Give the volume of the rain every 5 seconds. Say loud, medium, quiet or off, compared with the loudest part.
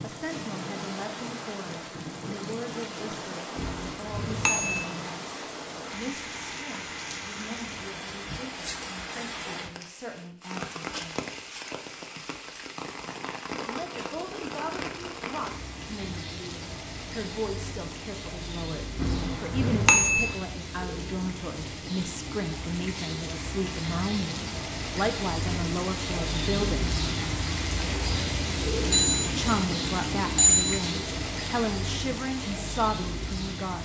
medium, medium, medium, medium, medium, loud, loud.